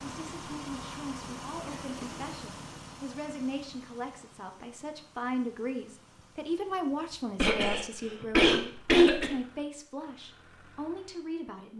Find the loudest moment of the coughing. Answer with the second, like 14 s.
9 s.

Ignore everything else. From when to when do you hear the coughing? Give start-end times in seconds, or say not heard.
1.6-2.2, 7.3-9.3.